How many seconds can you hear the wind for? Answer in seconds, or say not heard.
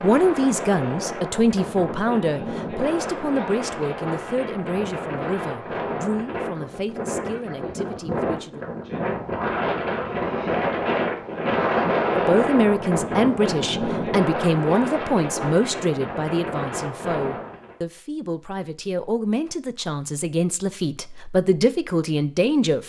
18 s.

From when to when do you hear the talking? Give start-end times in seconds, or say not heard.
0.0-8.7, 12.2-22.8.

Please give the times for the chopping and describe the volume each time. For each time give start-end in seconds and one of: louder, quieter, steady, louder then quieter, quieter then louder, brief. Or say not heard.
not heard.